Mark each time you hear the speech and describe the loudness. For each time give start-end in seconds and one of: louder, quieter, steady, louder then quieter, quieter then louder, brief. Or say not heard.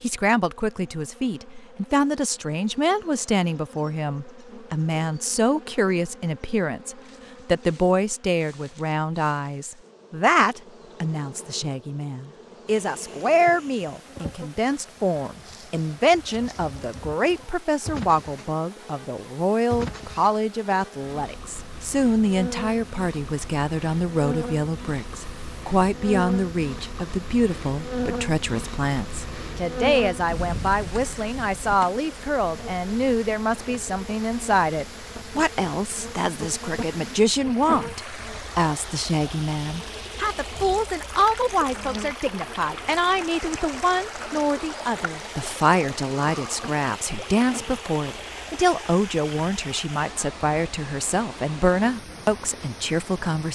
0.0-53.4 steady.